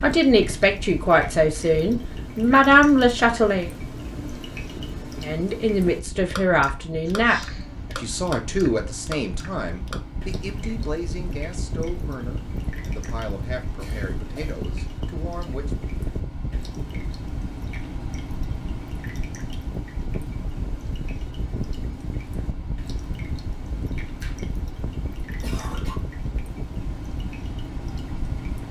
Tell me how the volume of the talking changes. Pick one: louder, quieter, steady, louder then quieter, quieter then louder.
quieter.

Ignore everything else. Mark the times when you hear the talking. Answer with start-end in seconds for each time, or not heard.
0.0-3.7, 5.2-15.8.